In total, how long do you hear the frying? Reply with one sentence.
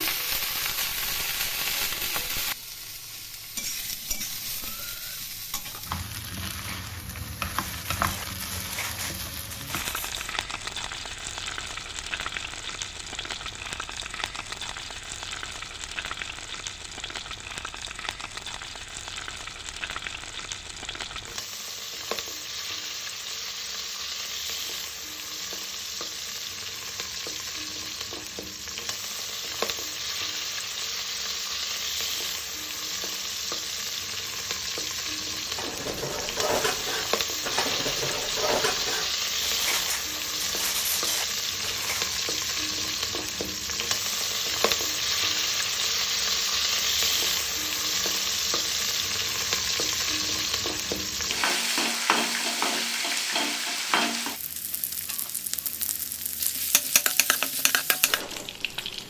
You can hear the frying for 59 seconds altogether.